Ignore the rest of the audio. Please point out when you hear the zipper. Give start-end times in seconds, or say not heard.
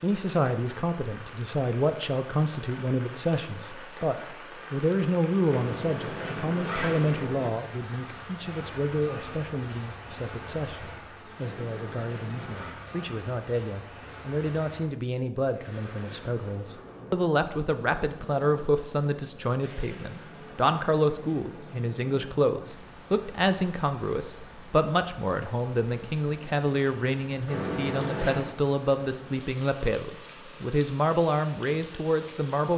5.5-7.5, 11.3-12.8, 27.4-28.6.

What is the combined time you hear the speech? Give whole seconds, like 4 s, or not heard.
33 s.